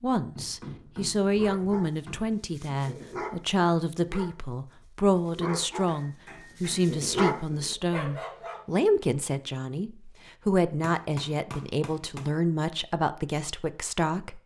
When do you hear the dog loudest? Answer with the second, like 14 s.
7 s.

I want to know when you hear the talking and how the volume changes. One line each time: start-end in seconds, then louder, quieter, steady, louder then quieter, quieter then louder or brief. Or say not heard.
0.0-14.4 steady.